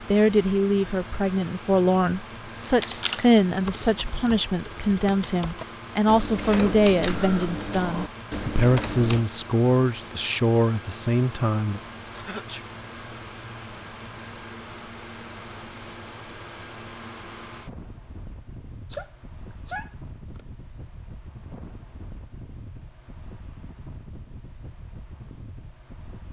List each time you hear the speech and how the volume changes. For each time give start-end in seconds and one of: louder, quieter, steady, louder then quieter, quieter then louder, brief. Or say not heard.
0.1-11.8 steady.